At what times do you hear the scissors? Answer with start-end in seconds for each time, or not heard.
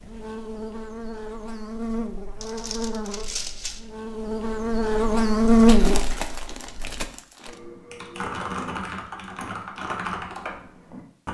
not heard.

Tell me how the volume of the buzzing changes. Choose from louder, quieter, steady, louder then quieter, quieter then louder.
louder.